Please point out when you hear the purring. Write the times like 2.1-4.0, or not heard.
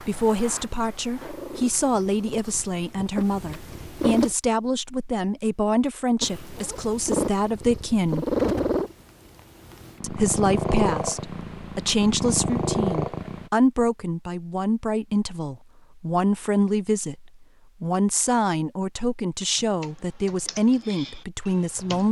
0.0-4.3, 6.2-13.5.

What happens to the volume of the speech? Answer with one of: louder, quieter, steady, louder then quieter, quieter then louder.
steady.